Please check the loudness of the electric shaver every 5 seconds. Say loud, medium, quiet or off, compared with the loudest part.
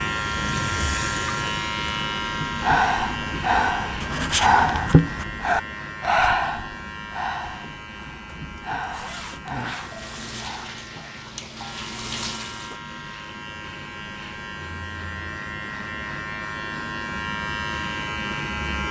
loud, medium, medium, loud.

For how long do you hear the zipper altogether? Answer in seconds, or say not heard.
2 s.